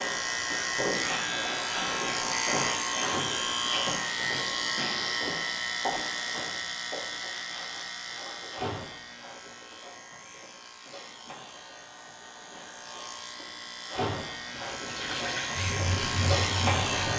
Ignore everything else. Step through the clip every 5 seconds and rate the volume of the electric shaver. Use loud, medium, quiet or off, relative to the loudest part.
loud, medium, medium, loud.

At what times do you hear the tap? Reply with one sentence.
You can hear the tap from 14.5 to 17.1 s.